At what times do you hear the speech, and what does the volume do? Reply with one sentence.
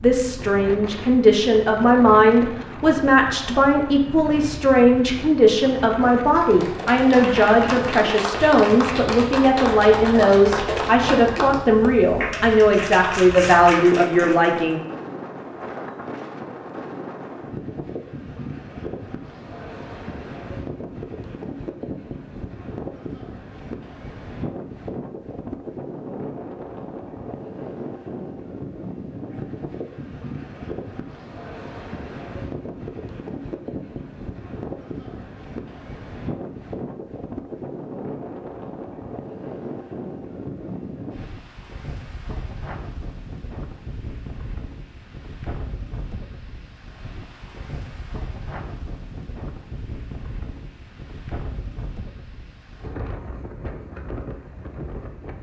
You can hear the speech from 0.0 to 14.8 s, at a steady volume.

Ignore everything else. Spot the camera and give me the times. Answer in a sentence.
You can't hear the camera here.